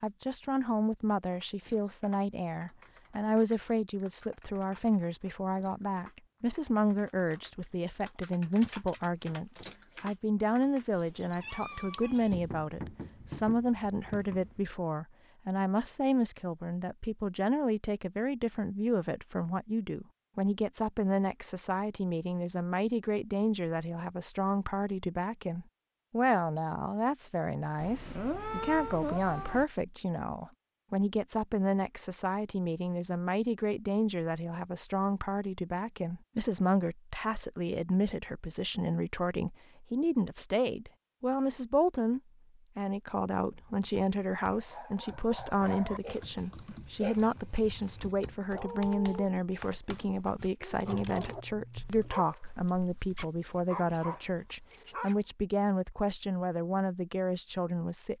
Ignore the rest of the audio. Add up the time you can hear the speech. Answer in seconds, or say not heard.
58 s.